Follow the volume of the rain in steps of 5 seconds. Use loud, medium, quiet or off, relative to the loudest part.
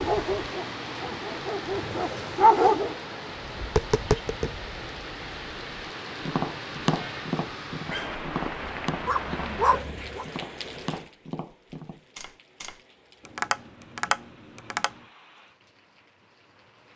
loud, loud, medium, quiet.